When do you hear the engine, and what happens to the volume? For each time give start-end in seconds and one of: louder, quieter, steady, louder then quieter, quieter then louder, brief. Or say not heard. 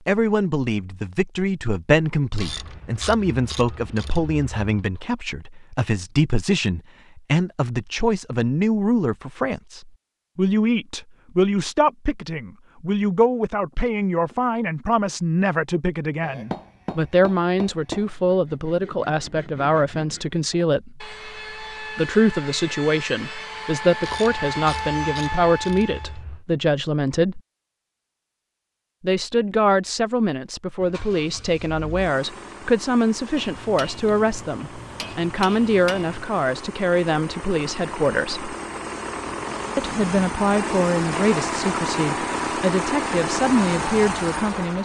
30.8-44.8 louder.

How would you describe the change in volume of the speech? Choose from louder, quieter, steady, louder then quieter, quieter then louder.
steady.